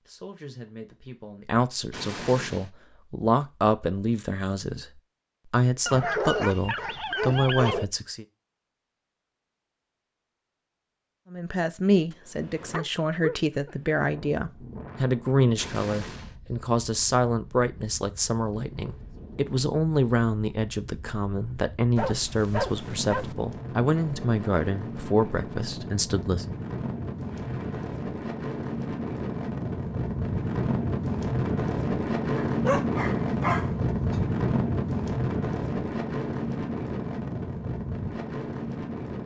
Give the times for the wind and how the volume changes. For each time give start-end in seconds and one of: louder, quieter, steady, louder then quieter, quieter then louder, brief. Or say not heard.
14.0-39.2 louder.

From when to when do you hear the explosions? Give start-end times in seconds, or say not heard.
1.9-2.7, 15.6-16.4, 27.3-27.9.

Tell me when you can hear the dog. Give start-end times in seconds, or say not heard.
5.8-7.8, 12.1-13.9, 21.9-23.4, 32.4-34.2.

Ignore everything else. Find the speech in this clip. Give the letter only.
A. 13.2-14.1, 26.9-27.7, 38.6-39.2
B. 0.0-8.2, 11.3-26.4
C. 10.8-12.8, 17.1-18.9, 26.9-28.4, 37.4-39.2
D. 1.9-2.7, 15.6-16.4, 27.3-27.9
B.